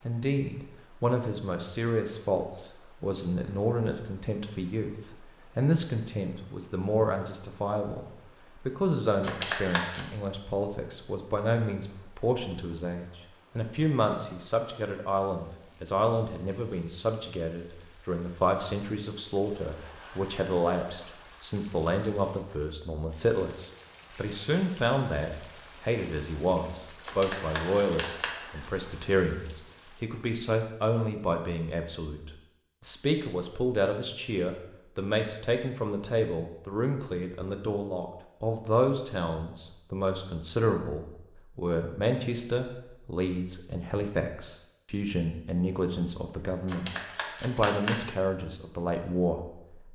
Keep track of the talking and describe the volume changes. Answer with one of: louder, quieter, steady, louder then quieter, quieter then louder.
steady.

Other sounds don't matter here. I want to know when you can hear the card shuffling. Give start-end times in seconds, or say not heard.
9.2-10.1, 27.0-28.3, 46.6-48.0.